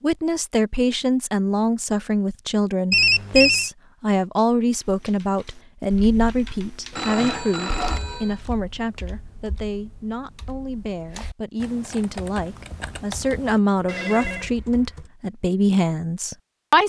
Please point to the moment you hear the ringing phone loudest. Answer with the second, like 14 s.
3 s.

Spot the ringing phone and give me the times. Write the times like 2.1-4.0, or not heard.
2.9-3.7, 6.9-8.3, 13.8-14.5.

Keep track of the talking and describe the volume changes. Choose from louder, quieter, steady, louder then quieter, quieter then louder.
quieter then louder.